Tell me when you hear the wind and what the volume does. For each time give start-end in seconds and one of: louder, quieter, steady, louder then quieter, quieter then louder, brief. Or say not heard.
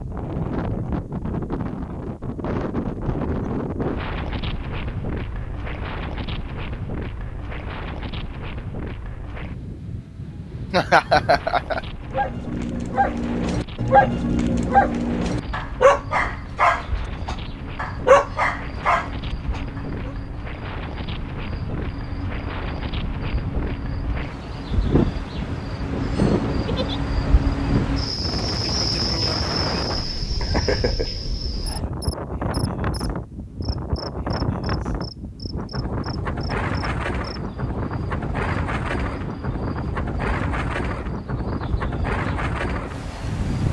0.0-43.6 quieter then louder.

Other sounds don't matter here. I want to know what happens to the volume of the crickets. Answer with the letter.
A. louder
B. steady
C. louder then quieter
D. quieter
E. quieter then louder
C.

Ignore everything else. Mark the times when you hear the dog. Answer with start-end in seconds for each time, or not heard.
12.0-20.1.